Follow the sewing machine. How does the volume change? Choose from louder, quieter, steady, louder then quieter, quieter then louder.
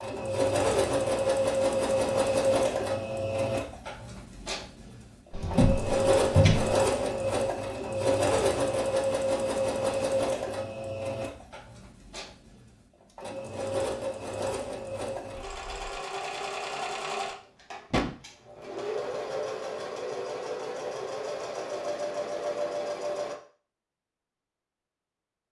quieter.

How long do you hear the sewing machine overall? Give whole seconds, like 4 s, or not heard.
23 s.